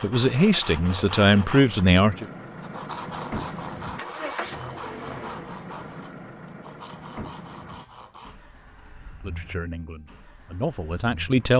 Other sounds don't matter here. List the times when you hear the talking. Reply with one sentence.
The talking can be heard from 0.0 to 2.2 s and from 9.2 to 11.5 s.